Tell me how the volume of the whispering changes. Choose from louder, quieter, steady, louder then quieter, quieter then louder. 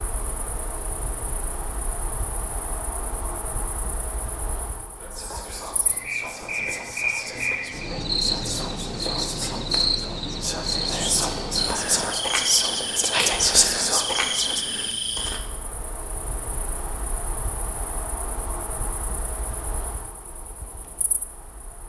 louder.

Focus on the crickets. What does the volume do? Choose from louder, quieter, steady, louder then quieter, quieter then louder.
louder then quieter.